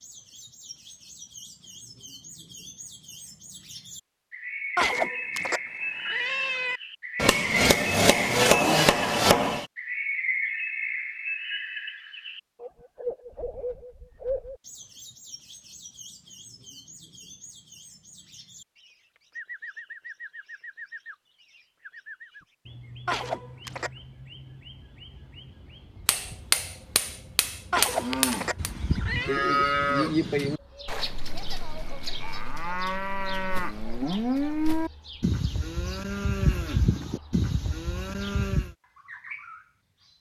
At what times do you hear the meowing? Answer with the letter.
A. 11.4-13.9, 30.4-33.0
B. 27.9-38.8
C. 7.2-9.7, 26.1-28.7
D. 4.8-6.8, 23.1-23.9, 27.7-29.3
D.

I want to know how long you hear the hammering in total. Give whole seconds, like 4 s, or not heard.
5 s.